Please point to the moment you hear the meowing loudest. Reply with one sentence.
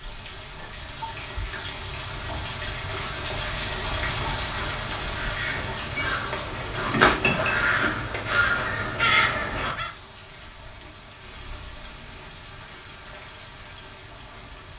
The volume of the meowing peaks at 7 seconds.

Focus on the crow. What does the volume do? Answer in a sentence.
The volume of the crow goes up.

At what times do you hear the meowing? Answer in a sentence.
The meowing can be heard from 6.0 to 8.4 s.